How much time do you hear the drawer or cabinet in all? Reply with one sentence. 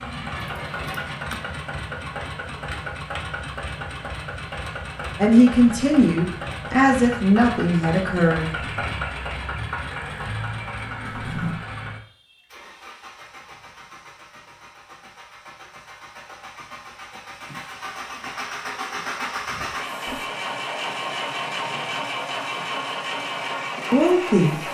The drawer or cabinet can be heard for 2 seconds in total.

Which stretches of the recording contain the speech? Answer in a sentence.
The speech can be heard from 5.2 to 8.7 s and from 23.9 to 24.6 s.